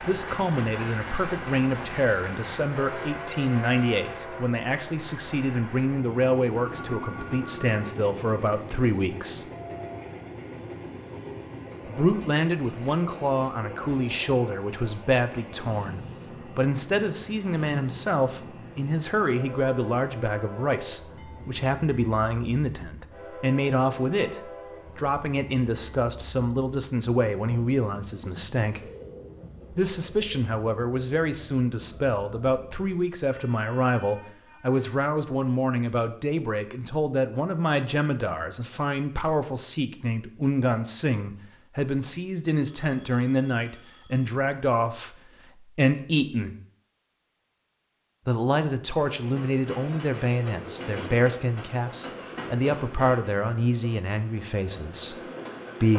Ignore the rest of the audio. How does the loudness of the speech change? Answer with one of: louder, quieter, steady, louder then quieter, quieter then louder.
steady.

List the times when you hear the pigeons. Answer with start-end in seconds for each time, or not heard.
not heard.